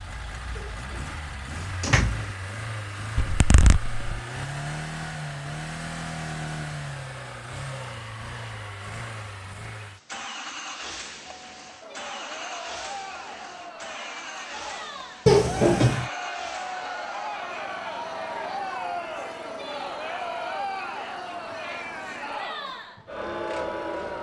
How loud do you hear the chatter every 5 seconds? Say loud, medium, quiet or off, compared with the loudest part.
off, off, medium, loud, loud.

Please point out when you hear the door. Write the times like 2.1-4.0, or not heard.
0.6-2.4, 15.2-16.1.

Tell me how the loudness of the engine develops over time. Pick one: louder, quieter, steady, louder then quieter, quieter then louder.
quieter.